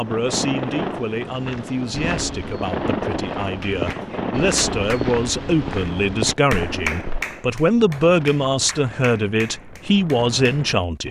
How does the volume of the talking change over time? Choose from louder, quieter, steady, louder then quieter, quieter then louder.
louder.